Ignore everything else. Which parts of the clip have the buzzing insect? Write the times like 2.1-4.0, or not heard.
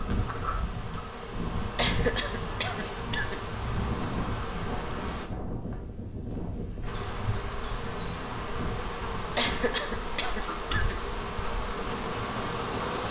0.0-5.3, 6.8-13.0.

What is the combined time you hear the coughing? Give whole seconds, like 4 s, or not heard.
3 s.